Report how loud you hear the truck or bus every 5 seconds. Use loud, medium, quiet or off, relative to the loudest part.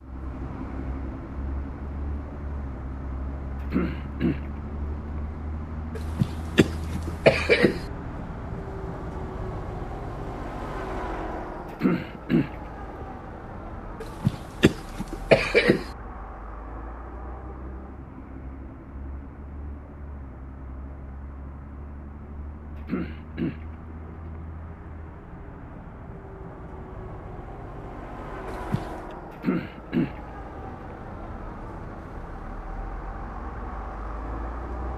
loud, loud, loud, medium, medium, loud, loud.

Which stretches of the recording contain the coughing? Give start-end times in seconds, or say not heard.
6.0-7.8, 14.0-15.8, 28.4-29.1.